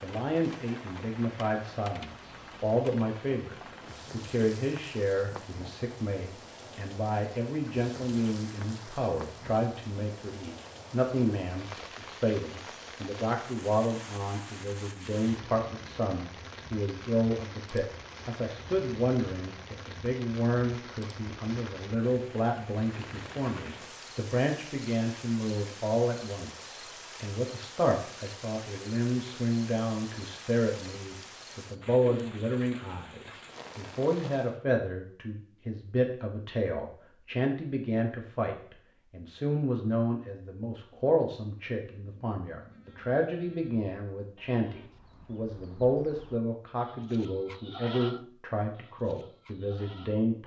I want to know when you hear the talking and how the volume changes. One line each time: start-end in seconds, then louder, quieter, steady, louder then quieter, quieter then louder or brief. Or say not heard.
0.0-50.4 steady.